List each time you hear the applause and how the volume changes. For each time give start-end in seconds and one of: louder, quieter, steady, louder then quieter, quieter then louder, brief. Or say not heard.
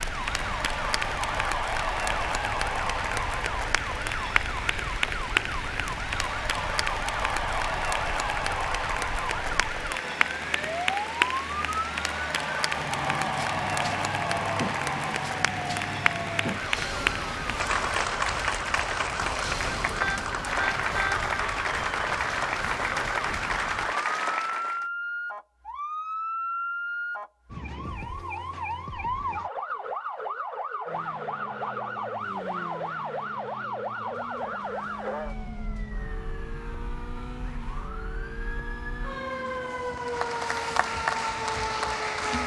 0.0-24.9 steady
40.0-42.4 brief.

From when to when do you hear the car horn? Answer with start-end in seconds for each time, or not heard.
20.0-21.2.